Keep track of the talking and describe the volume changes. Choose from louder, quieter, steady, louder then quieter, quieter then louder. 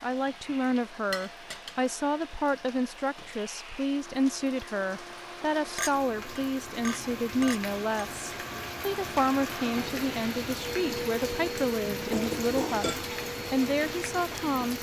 steady.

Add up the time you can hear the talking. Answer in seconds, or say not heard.
15 s.